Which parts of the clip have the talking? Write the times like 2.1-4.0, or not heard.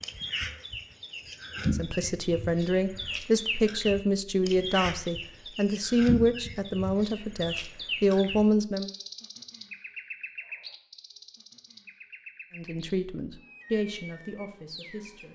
1.7-8.9, 12.6-15.2.